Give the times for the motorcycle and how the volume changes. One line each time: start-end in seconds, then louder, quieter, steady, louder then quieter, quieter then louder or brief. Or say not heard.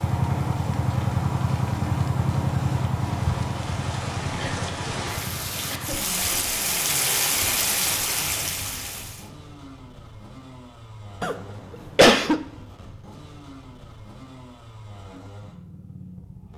0.0-16.5 quieter.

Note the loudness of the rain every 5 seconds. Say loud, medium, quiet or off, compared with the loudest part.
medium, loud, off, off.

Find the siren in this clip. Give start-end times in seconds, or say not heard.
not heard.